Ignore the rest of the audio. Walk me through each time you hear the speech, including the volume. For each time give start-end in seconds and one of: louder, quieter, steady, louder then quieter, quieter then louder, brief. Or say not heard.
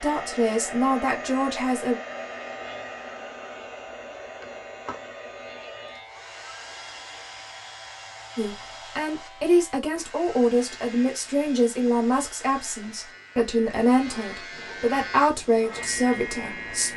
0.0-1.9 brief
8.3-16.9 steady.